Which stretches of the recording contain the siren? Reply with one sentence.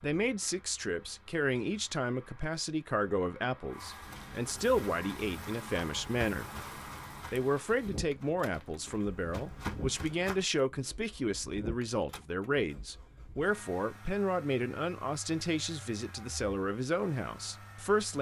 You can't hear the siren here.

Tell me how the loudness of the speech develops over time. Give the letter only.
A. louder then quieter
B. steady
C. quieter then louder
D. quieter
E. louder
B.